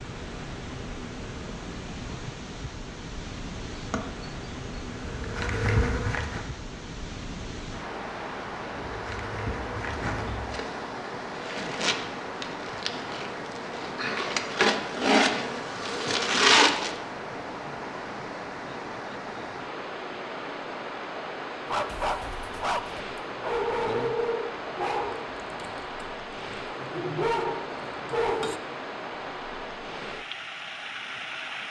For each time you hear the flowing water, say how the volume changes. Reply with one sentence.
You can hear the flowing water from 0.0 to 31.6 s, at a steady volume.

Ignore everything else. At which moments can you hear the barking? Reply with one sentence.
You can hear the barking from 21.6 to 28.6 s.